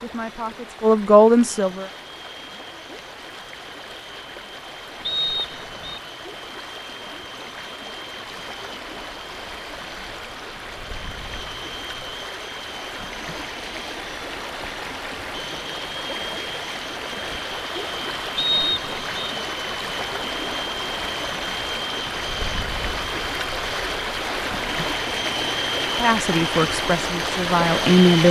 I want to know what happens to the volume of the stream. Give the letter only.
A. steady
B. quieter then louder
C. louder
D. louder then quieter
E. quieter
C.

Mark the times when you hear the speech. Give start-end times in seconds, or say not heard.
0.0-1.9, 25.9-28.2.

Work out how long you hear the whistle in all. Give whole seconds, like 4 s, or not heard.
2 s.